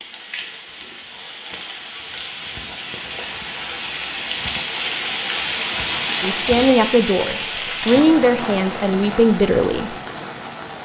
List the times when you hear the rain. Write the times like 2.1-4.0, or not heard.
0.0-10.8.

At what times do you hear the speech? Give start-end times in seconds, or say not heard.
6.2-9.9.